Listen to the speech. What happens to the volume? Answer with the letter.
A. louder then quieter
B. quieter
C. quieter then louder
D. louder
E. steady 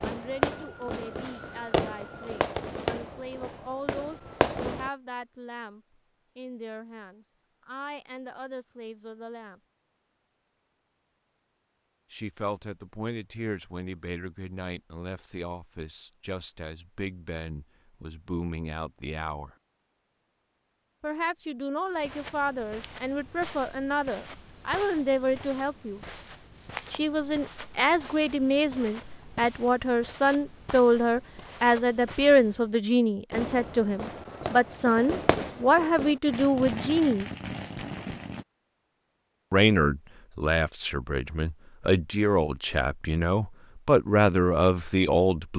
D.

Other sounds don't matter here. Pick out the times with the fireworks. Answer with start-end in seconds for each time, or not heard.
0.0-4.9, 33.3-38.5.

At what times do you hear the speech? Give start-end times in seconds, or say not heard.
0.0-9.6, 12.1-19.5, 21.0-26.0, 26.9-37.3, 39.5-45.5.